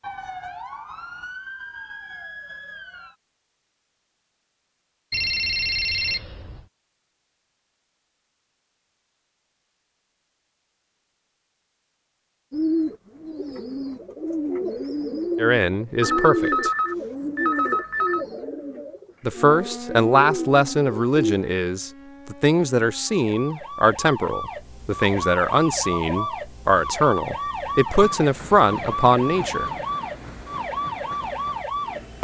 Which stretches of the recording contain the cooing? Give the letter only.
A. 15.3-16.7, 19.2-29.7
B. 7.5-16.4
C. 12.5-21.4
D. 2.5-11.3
C.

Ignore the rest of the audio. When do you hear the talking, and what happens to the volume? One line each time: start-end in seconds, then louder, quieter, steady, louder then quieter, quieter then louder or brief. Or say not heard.
15.3-16.7 brief
19.2-29.7 steady.